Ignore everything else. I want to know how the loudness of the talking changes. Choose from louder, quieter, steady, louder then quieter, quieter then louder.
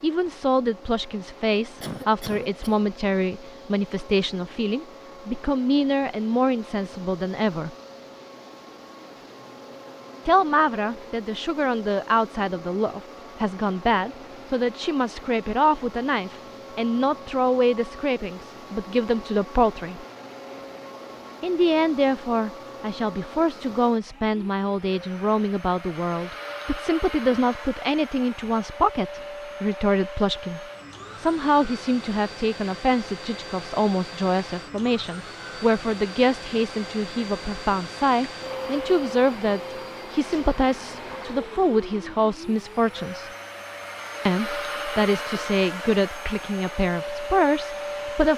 steady.